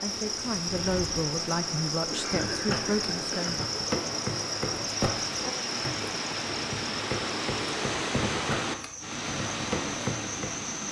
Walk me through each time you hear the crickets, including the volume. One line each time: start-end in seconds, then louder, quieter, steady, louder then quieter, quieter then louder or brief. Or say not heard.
0.0-10.8 quieter.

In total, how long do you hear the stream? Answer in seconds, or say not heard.
11 s.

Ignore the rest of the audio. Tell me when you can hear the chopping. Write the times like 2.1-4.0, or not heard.
2.3-10.6.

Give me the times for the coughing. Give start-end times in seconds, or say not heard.
2.0-3.6.